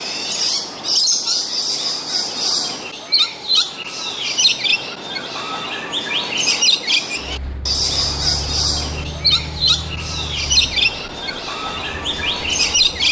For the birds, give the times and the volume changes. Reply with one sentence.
You can hear the birds from 0.0 to 13.0 s, at a steady volume.